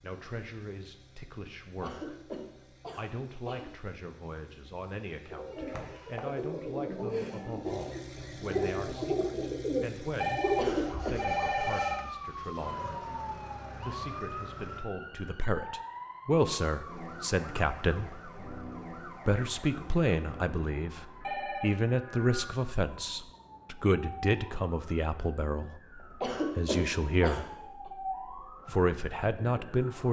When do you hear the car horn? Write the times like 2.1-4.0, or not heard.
not heard.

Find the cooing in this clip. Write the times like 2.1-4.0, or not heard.
5.3-10.8.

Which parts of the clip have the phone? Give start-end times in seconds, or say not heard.
10.2-12.1, 21.2-21.8.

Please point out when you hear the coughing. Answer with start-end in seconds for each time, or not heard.
1.8-3.7, 10.6-11.2, 26.2-27.9.